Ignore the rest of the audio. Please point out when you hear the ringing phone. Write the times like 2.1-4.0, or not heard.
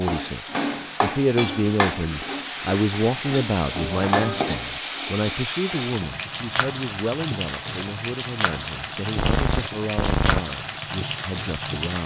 3.8-4.5, 9.2-10.6.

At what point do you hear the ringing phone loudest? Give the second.
10 s.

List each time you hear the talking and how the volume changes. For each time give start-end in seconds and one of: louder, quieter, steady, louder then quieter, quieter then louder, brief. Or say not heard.
0.0-12.0 quieter.